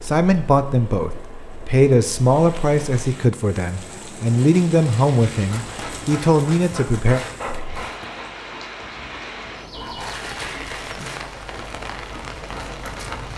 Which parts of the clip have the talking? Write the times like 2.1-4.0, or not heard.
0.0-7.2.